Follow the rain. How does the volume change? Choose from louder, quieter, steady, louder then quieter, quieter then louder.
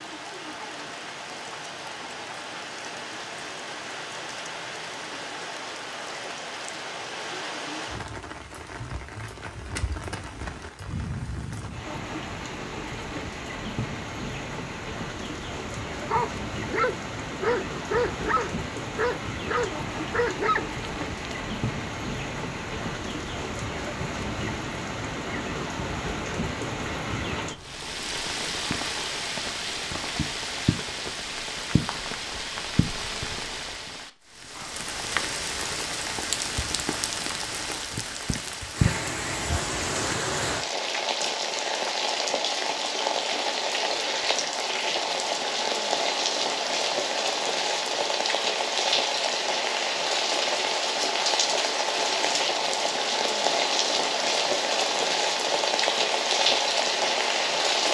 louder.